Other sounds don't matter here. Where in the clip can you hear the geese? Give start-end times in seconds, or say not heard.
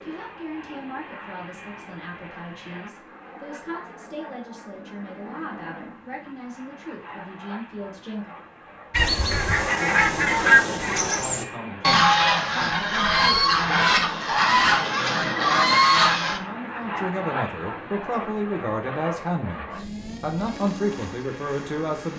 8.9-16.4.